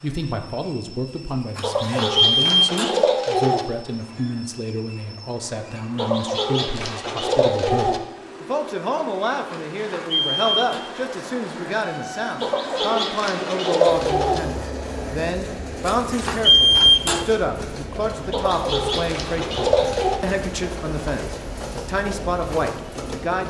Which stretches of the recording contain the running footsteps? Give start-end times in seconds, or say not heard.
not heard.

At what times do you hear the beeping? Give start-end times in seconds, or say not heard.
1.6-3.0, 9.5-10.8, 15.8-17.2.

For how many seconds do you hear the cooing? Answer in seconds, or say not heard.
8 s.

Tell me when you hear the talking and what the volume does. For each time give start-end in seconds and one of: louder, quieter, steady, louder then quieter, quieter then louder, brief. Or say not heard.
0.0-23.4 steady.